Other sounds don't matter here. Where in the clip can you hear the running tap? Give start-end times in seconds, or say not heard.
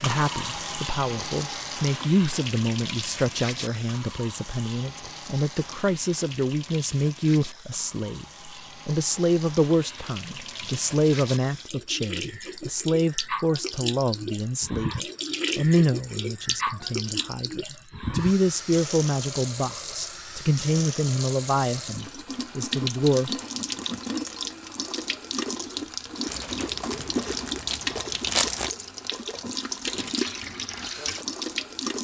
0.0-32.0.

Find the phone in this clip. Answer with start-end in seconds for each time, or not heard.
not heard.